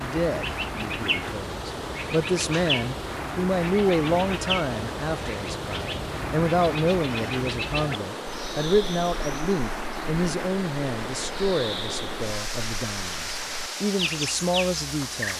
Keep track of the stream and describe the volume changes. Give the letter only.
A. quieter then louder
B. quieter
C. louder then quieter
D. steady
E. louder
D.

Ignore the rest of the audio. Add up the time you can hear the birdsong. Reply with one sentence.
The birdsong can be heard for 15 seconds in total.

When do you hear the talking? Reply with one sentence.
The talking can be heard from 0.0 to 15.3 s.